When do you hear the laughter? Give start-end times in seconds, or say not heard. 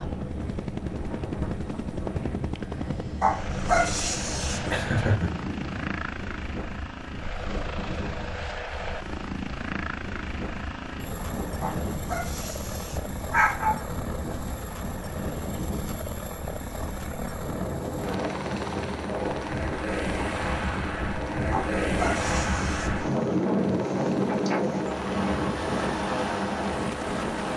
4.7-5.4.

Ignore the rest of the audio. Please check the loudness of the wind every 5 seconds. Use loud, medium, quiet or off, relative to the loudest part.
medium, quiet, quiet, medium, loud, loud.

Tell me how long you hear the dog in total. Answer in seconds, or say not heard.
5 s.